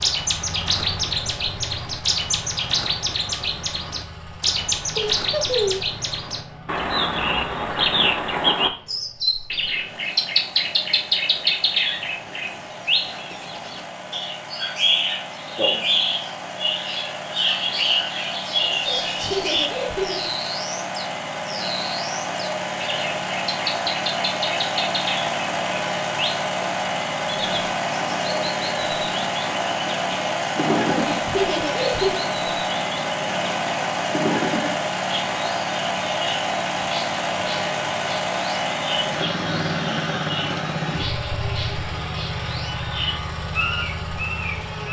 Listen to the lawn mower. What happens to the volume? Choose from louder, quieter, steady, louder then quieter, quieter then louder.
louder.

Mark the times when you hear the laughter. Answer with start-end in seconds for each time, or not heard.
5.0-5.9, 18.9-20.4, 31.1-32.2.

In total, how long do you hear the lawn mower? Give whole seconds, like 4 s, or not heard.
45 s.